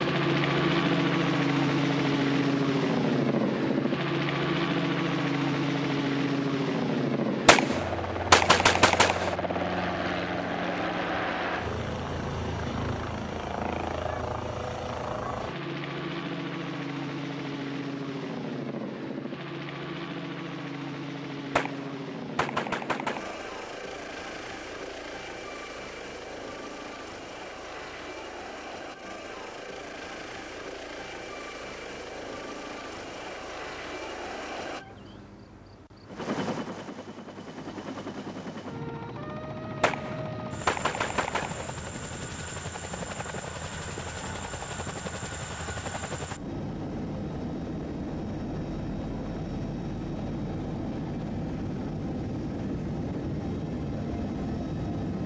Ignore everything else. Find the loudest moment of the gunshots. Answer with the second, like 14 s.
8 s.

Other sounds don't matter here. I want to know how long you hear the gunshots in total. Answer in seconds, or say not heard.
6 s.